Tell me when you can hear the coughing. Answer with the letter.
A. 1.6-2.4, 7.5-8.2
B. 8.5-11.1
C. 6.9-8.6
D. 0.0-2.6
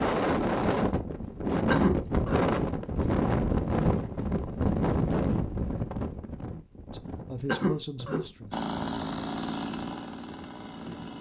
A.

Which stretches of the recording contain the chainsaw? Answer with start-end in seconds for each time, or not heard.
8.5-11.1.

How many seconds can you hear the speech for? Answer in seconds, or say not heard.
2 s.